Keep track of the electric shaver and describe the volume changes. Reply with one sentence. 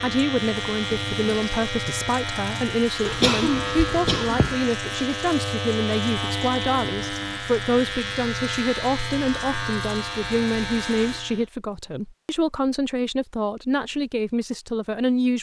The loudness of the electric shaver stays about the same.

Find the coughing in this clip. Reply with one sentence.
You can hear the coughing from 3.0 to 4.6 s.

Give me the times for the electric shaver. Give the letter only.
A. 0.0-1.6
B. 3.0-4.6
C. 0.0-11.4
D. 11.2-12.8
C.